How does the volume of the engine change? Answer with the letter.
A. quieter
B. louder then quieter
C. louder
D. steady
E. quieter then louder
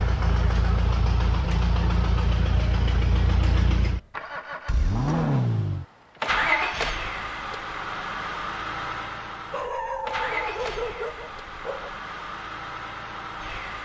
A.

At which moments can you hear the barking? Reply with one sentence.
The barking can be heard from 9.5 to 12.0 s.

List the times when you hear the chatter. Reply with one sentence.
The chatter can't be heard in this clip.